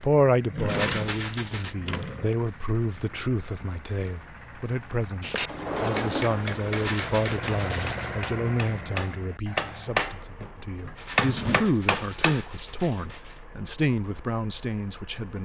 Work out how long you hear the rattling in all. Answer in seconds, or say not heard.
5 s.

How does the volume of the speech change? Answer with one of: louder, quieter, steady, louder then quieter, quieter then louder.
steady.